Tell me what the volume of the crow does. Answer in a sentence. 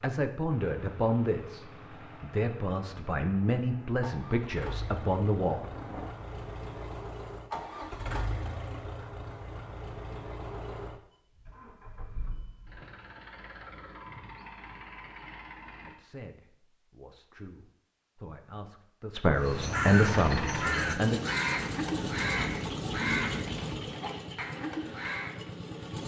The volume of the crow goes down.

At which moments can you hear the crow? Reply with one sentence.
The crow can be heard from 19.4 to 25.4 s.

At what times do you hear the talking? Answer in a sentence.
You can hear the talking from 0.0 to 5.8 s and from 15.8 to 21.4 s.